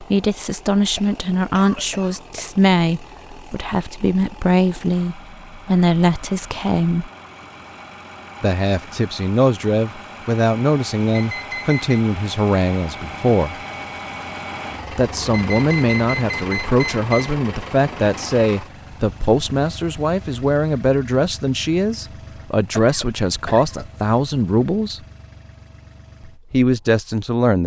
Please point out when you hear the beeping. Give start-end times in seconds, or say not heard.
11.1-12.0, 15.3-17.4.